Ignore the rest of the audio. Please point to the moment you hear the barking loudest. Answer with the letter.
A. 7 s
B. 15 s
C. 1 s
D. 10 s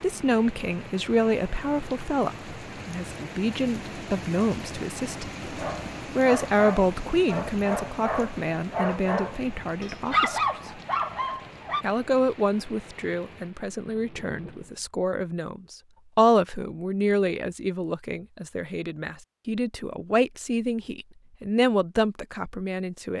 D.